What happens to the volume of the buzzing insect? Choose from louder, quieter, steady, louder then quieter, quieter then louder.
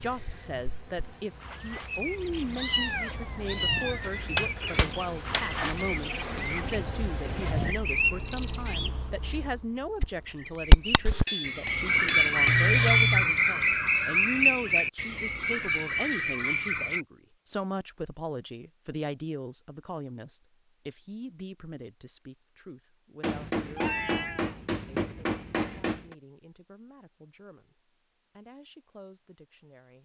louder.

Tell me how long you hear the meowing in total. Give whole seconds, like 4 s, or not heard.
3 s.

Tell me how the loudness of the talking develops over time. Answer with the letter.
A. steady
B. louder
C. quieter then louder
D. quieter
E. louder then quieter
D.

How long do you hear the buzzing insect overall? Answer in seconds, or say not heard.
8 s.